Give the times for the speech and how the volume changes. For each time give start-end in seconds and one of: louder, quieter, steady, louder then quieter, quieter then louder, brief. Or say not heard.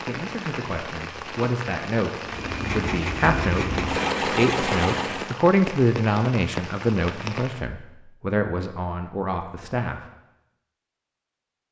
0.1-10.1 louder then quieter.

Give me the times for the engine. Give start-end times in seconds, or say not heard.
2.2-5.4.